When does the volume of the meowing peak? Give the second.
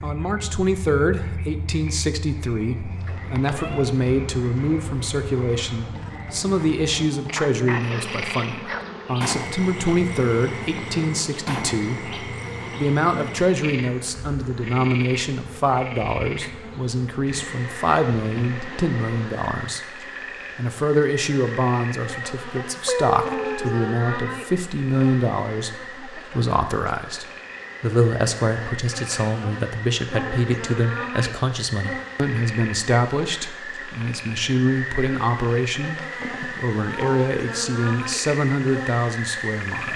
23 s.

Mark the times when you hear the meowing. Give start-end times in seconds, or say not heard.
3.0-4.0, 22.9-24.0, 36.2-37.1.